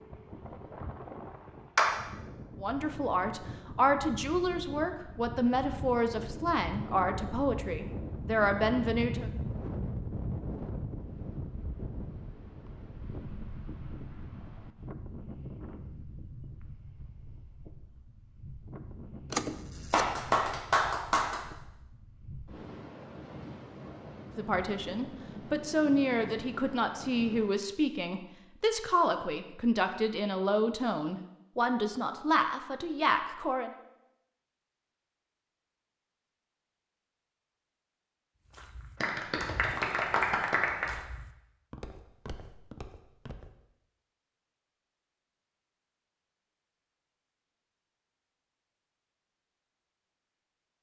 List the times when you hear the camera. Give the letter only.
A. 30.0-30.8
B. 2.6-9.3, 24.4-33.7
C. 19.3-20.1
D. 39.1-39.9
C.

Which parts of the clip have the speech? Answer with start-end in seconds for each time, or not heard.
2.6-9.3, 24.4-33.7.